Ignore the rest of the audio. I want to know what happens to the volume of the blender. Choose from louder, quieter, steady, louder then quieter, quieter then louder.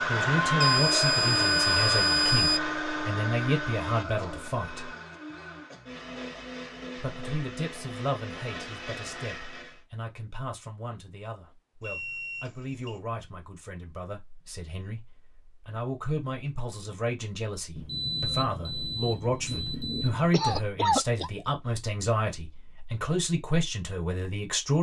quieter.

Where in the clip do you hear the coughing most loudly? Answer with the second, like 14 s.
21 s.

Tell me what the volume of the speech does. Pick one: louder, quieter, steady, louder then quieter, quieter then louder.
quieter then louder.